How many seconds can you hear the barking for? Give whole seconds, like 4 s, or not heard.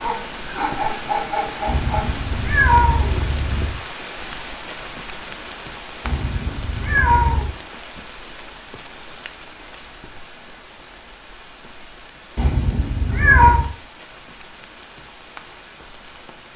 2 s.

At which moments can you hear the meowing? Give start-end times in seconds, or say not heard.
1.6-3.8, 6.0-7.5, 12.3-13.7.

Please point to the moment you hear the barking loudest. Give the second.
1 s.